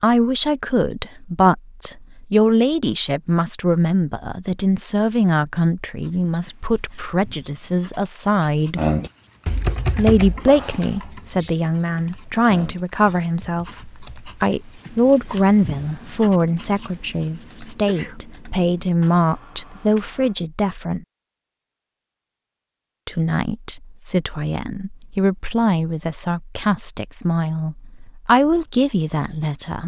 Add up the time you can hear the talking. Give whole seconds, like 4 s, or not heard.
27 s.